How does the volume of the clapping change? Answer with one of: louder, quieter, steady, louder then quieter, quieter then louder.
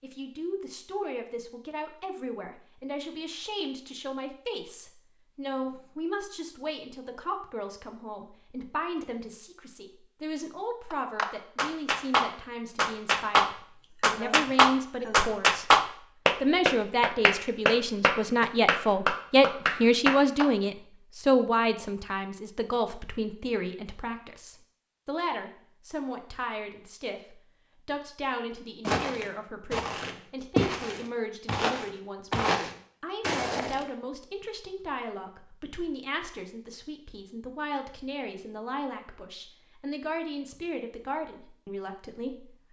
louder then quieter.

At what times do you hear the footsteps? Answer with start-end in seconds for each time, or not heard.
28.8-33.9.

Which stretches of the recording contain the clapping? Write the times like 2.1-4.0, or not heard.
10.9-20.4.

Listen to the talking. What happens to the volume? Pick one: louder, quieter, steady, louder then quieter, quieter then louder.
louder then quieter.